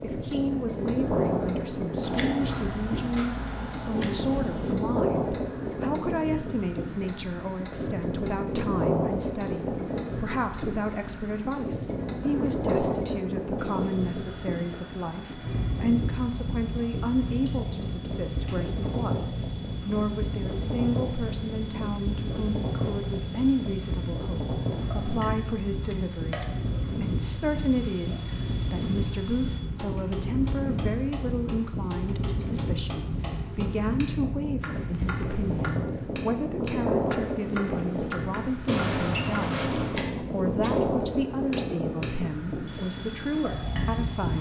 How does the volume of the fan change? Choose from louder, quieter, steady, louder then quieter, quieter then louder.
steady.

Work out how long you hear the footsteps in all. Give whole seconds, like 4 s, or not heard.
not heard.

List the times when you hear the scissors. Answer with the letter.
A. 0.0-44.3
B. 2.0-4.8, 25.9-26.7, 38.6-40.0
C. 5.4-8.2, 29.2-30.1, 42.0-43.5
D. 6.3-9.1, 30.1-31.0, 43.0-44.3
B.